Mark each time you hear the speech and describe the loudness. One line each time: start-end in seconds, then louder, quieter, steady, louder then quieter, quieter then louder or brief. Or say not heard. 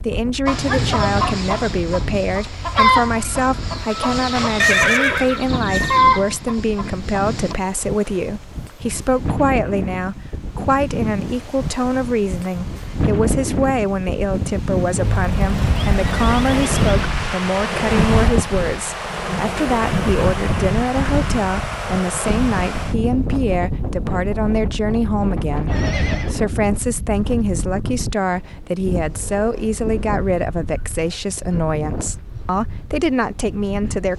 0.0-34.1 steady.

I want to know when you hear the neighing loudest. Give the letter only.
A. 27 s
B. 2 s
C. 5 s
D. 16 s
C.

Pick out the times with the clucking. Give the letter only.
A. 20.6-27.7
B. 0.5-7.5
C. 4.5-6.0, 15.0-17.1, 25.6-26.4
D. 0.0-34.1
B.